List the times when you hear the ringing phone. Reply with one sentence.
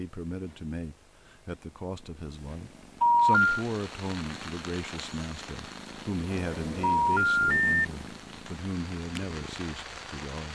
You can hear the ringing phone from 3.0 to 3.5 s and from 6.8 to 7.8 s.